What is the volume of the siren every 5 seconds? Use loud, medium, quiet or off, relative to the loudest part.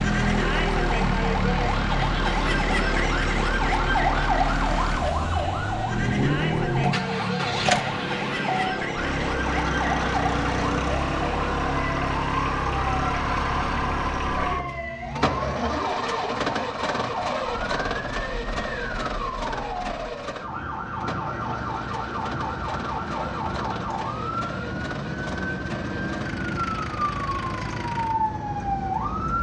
loud, loud, medium, medium, medium, loud.